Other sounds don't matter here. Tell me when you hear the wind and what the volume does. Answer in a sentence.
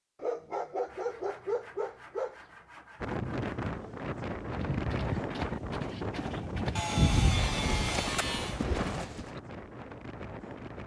The wind can be heard from 3.0 to 10.8 s, getting quieter.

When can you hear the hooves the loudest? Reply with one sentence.
The loudest moment of the hooves is at 7 seconds.